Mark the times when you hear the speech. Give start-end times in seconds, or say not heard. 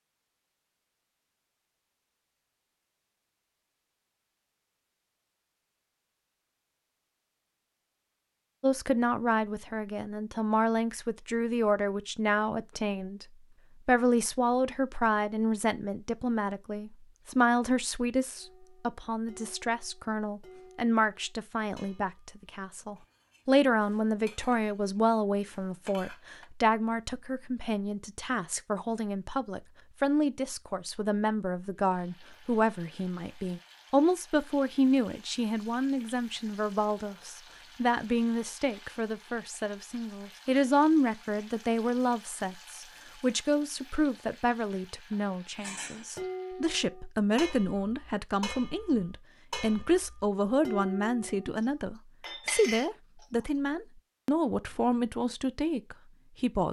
8.6-13.2, 13.8-56.6.